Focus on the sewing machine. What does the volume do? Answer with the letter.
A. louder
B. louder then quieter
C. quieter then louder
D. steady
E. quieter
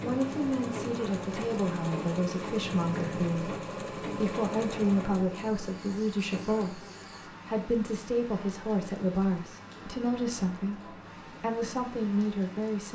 E.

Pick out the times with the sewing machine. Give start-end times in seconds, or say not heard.
0.0-6.7.